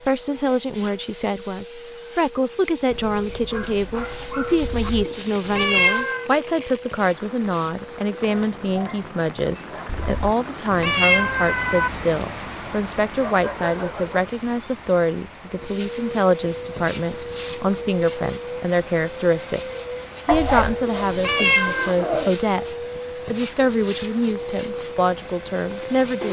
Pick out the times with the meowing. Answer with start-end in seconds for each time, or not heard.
4.6-6.2, 9.8-11.9, 20.3-21.9.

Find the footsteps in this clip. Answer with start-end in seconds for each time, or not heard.
not heard.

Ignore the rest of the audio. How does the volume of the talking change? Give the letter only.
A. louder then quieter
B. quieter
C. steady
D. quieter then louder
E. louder
C.